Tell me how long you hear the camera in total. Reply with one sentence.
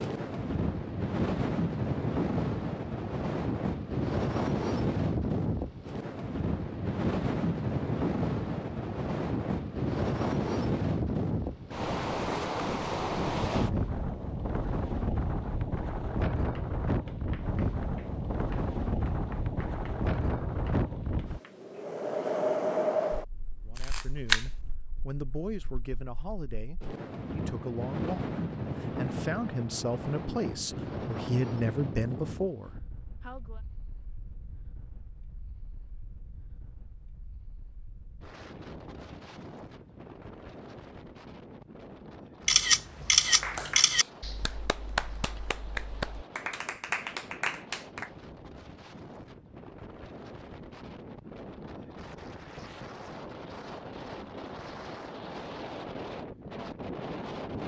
You can hear the camera for 2 seconds altogether.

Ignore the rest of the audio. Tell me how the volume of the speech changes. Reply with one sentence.
The volume of the speech goes up.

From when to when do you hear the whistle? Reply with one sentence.
You can't hear the whistle here.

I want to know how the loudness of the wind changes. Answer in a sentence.
The loudness of the wind goes down, then up.